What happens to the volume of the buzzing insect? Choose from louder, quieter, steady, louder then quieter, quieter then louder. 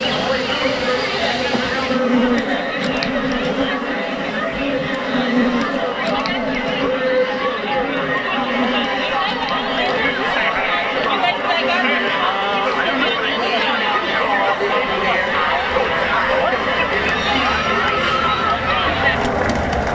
quieter.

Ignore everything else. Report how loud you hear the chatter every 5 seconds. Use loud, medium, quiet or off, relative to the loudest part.
medium, loud, loud, loud.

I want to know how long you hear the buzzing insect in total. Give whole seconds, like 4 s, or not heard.
20 s.